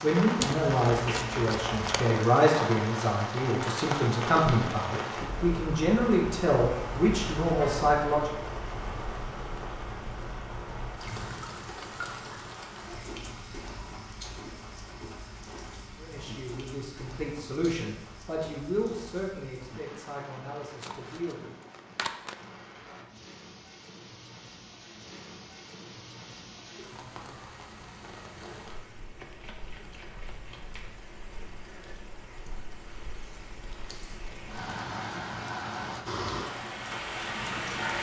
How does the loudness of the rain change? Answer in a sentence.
The volume of the rain goes down, then up.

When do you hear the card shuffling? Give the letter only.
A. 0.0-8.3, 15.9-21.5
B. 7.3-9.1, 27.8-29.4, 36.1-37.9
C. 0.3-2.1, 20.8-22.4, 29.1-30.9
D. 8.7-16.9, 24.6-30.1
C.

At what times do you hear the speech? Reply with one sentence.
The speech can be heard from 0.0 to 8.3 s and from 15.9 to 21.5 s.